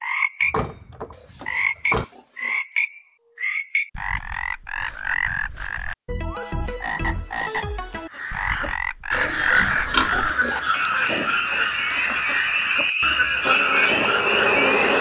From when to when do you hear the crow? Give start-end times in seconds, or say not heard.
8.1-14.9.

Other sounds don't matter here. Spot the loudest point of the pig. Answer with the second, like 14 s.
10 s.